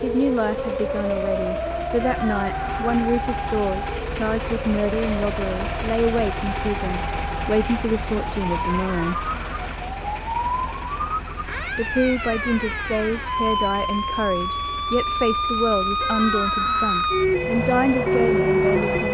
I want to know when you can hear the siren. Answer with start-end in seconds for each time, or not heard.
0.0-19.0.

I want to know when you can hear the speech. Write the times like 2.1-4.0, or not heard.
0.0-9.3, 11.7-19.0.